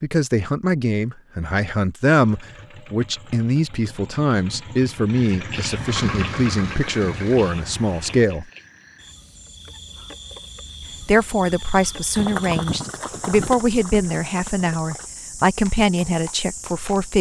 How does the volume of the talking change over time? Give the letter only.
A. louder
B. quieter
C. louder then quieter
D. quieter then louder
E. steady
E.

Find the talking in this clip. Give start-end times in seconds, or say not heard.
0.0-8.4, 11.0-17.1.